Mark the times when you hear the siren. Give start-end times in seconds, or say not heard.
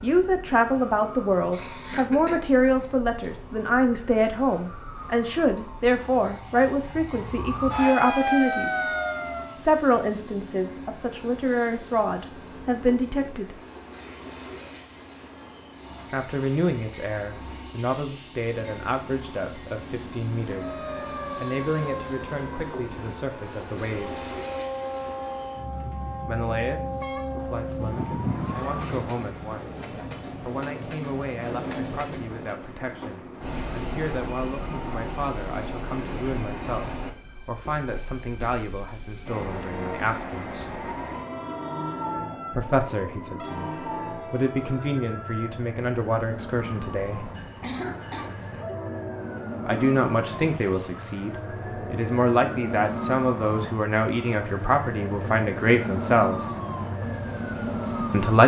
0.0-9.7, 20.4-29.0, 39.5-58.4.